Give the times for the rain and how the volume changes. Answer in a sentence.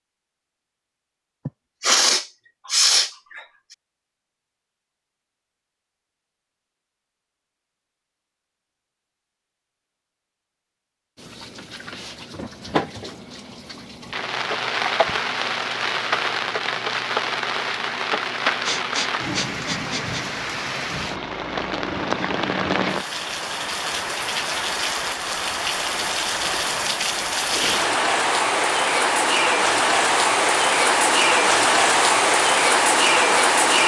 The rain can be heard from 11.2 to 33.8 s, getting louder.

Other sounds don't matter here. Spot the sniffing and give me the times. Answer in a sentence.
You can hear the sniffing from 1.4 to 3.4 s, from 18.6 to 20.2 s and from 27.4 to 27.9 s.